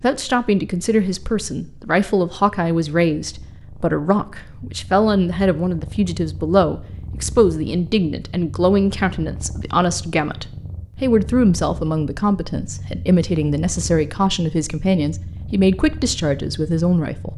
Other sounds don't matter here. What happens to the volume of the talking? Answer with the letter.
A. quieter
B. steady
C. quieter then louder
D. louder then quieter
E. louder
B.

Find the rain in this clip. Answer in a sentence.
You can't hear the rain here.